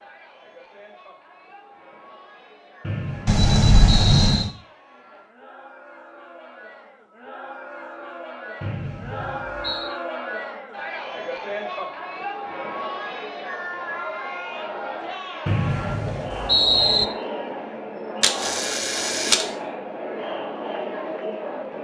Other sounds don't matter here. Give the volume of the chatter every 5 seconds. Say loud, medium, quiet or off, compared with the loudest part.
quiet, medium, loud, loud, loud.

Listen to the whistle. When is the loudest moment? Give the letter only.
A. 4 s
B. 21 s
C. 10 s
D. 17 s
D.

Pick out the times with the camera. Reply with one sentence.
The camera can be heard from 3.2 to 4.5 s and from 18.2 to 19.4 s.